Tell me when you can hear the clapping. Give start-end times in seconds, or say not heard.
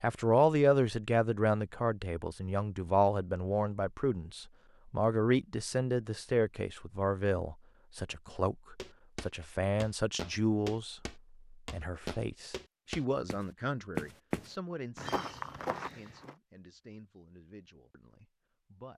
not heard.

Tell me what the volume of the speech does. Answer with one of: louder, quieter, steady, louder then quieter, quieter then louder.
quieter.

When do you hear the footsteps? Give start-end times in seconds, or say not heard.
8.8-16.4.